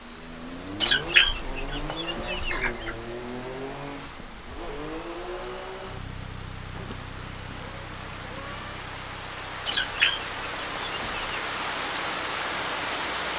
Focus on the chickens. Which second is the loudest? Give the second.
1 s.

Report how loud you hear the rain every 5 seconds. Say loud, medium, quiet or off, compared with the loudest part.
quiet, medium, loud.